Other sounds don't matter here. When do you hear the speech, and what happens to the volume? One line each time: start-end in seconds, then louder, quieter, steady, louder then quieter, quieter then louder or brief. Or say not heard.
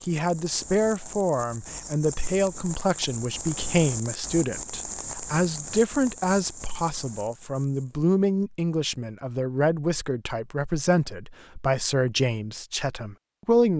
0.1-13.7 steady.